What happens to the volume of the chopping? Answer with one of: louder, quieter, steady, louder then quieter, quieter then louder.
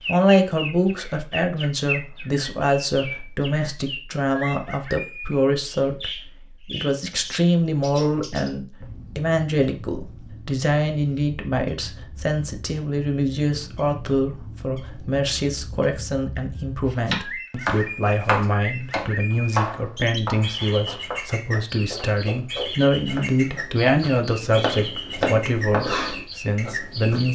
quieter then louder.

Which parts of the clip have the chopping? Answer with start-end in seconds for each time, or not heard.
17.1-27.3.